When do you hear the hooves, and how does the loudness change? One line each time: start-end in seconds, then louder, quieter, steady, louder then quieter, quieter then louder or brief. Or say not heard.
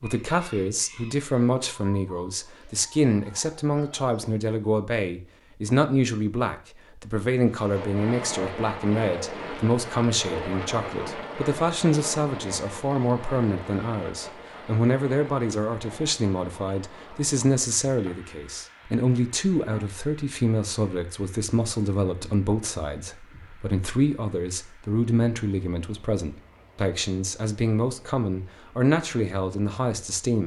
not heard.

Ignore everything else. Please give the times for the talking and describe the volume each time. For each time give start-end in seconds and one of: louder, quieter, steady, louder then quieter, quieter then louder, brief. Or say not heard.
0.0-30.4 steady.